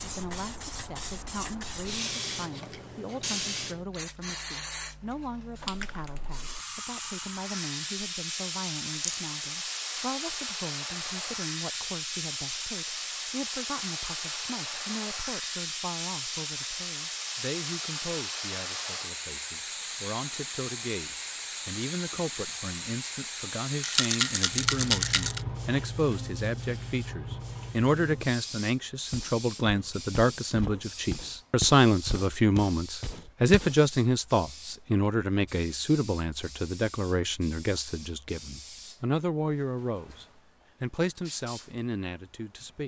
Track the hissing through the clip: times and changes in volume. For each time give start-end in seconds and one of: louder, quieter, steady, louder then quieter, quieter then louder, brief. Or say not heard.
0.0-42.8 quieter.